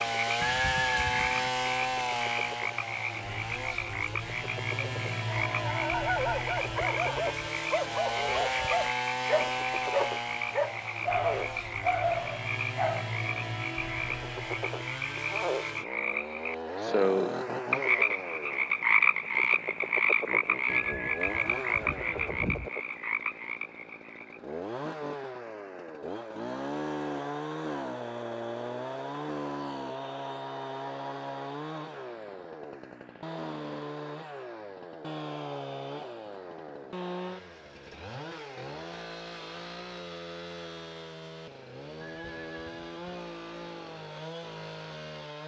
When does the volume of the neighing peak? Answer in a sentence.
The volume of the neighing peaks at 1 second.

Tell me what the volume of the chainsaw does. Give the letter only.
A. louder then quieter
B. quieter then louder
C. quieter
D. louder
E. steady
C.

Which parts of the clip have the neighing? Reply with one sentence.
The neighing can be heard from 0.4 to 1.5 s, from 20.6 to 22.7 s and from 42.0 to 43.2 s.